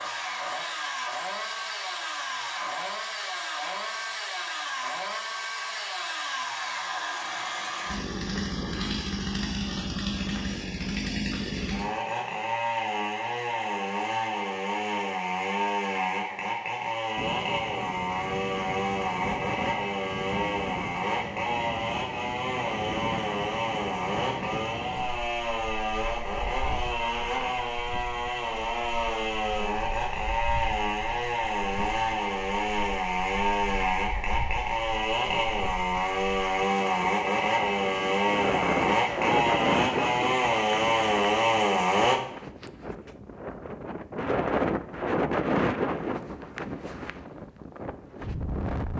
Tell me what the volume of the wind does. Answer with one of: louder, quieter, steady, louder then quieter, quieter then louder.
quieter then louder.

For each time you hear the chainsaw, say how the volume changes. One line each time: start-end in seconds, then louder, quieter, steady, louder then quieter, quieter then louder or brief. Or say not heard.
0.0-42.2 louder.